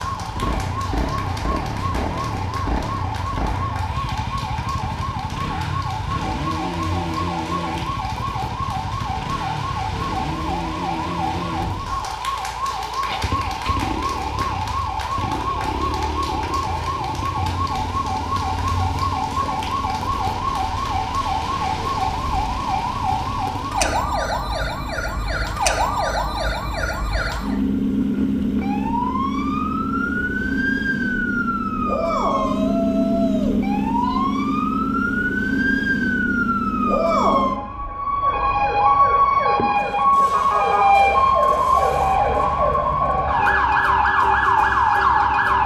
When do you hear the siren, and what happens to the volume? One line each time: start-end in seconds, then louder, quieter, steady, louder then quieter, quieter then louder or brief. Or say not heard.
0.0-45.6 louder.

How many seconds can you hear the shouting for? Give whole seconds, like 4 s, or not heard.
2 s.